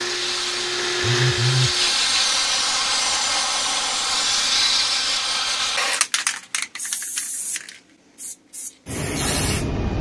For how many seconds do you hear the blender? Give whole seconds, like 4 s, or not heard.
2 s.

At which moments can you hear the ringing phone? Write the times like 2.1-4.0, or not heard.
1.0-1.8.